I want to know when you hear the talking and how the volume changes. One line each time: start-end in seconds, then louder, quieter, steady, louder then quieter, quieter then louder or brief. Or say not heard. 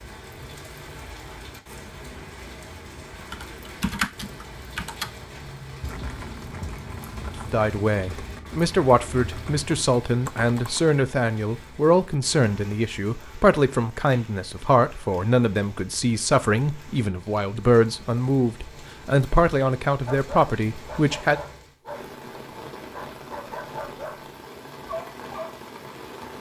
7.5-21.4 steady.